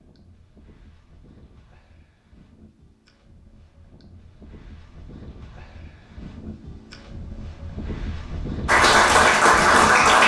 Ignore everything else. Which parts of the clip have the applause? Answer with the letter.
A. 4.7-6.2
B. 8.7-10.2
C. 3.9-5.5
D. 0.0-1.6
B.